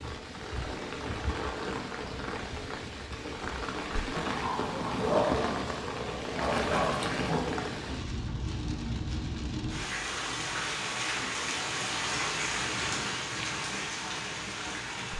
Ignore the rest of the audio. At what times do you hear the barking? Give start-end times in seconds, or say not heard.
3.9-7.7.